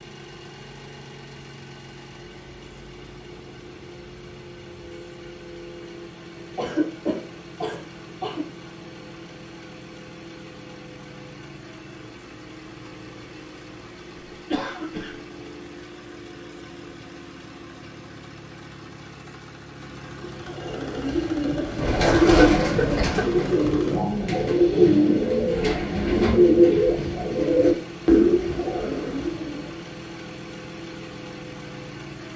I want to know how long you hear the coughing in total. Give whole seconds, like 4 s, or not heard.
4 s.